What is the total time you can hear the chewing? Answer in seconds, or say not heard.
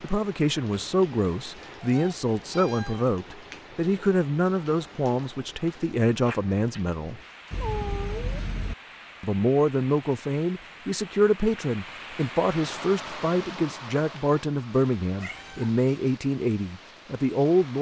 not heard.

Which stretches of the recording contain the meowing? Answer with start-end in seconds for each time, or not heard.
1.8-3.1, 7.5-8.8, 15.2-15.8.